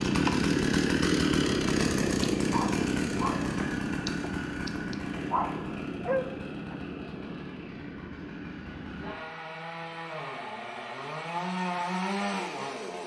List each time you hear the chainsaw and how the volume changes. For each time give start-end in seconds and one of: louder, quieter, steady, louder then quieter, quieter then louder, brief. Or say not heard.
0.0-13.0 quieter then louder.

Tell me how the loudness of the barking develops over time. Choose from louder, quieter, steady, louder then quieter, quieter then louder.
quieter then louder.